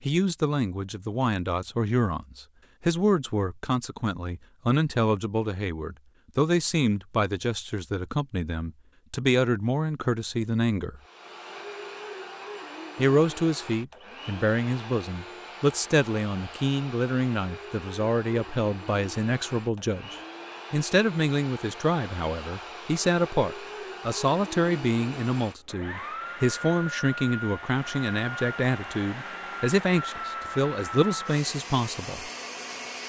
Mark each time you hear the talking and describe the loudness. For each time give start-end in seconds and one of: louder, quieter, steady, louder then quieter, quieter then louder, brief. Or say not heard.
0.0-11.0 steady
12.9-32.3 steady.